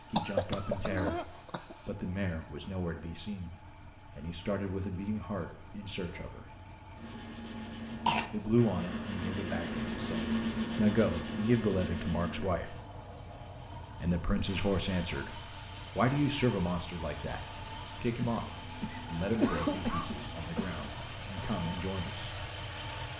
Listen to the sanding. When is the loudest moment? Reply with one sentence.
The loudest moment of the sanding is at 10 seconds.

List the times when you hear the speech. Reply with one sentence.
The speech can be heard from 0.0 to 6.5 s, from 8.3 to 12.8 s and from 14.0 to 22.3 s.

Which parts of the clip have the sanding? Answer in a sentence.
The sanding can be heard from 7.0 to 12.5 s.